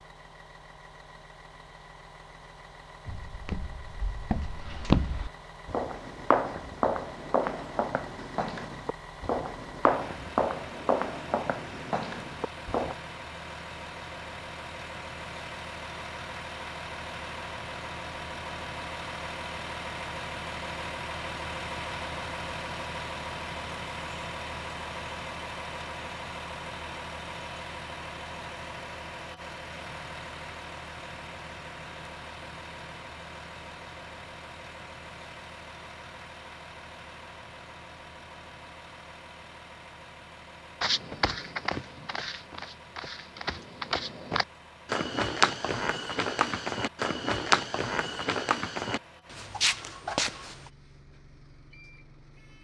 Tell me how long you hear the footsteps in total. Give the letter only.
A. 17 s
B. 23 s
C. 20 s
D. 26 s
C.